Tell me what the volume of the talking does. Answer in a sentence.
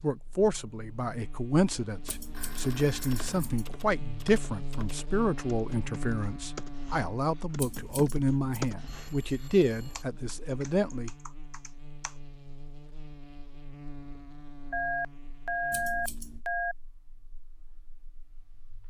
The volume of the talking stays about the same.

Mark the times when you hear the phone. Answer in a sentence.
You can hear the phone from 2.3 to 3.5 s, from 8.8 to 10.1 s and from 14.7 to 16.8 s.